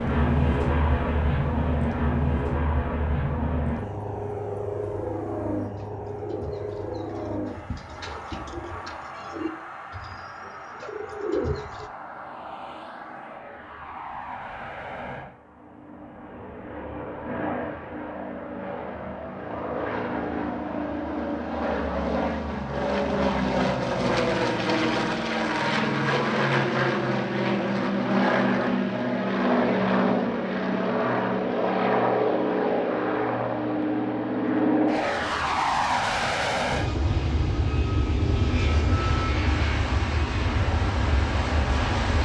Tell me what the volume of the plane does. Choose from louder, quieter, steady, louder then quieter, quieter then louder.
quieter then louder.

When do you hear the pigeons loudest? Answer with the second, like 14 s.
11 s.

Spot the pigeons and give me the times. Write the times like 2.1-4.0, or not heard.
5.7-11.9.